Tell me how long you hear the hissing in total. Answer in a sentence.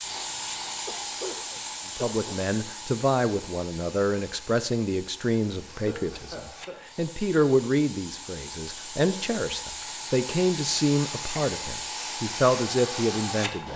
You can hear the hissing for 14 seconds altogether.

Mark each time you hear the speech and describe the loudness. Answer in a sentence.
You can hear the speech from 1.9 to 13.7 s, at a steady volume.